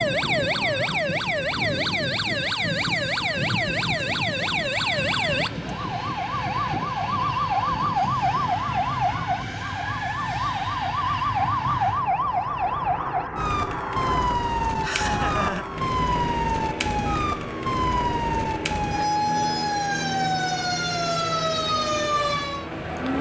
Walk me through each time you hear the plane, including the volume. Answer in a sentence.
The plane can be heard from 0.0 to 23.1 s, at a steady volume.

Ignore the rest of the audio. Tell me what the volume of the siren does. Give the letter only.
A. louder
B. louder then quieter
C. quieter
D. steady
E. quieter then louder
D.